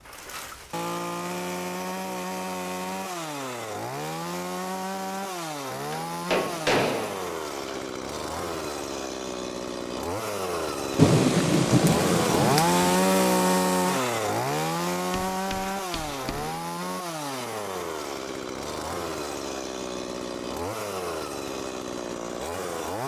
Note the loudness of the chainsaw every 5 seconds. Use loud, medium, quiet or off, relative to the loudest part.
medium, medium, loud, medium, medium.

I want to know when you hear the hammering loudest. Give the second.
7 s.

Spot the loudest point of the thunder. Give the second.
11 s.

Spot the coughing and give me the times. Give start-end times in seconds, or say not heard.
not heard.